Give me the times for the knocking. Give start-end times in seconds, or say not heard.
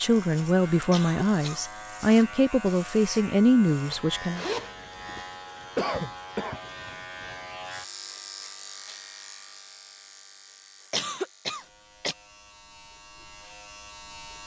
not heard.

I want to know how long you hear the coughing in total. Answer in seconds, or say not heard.
3 s.